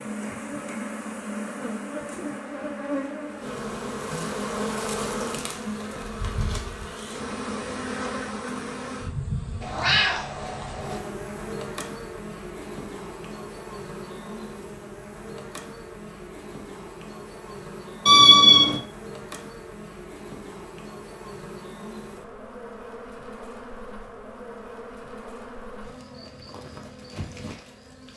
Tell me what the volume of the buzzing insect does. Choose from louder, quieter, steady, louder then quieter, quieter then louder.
quieter.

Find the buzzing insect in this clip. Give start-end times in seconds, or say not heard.
0.0-28.1.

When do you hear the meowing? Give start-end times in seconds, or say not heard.
9.6-11.0, 18.1-18.8.